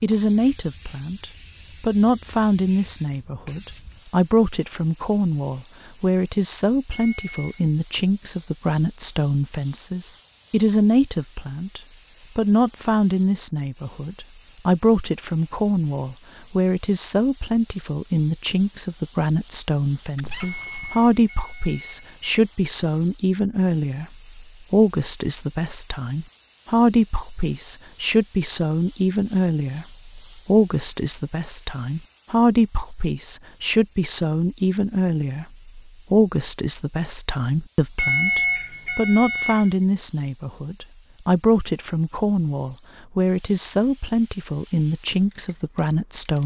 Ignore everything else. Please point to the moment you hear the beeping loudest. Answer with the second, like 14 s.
38 s.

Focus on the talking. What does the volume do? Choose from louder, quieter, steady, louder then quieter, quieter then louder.
steady.